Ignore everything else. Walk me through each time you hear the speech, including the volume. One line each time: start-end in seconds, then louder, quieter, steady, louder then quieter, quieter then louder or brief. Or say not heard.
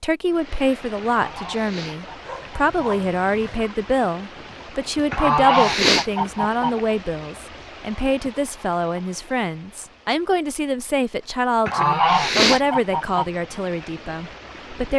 0.0-14.9 steady.